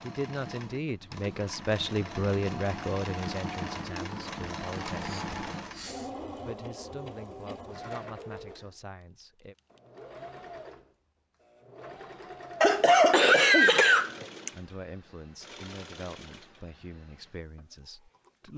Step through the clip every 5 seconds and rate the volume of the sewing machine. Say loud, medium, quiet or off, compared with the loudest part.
loud, loud, medium, quiet.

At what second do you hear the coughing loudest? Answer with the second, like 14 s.
13 s.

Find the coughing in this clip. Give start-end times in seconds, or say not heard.
4.9-6.1, 12.6-14.5.